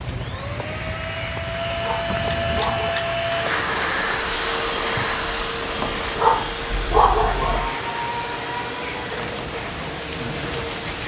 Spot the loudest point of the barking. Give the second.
7 s.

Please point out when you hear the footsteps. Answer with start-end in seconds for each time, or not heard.
not heard.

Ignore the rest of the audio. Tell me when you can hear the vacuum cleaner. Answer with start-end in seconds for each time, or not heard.
0.0-11.0.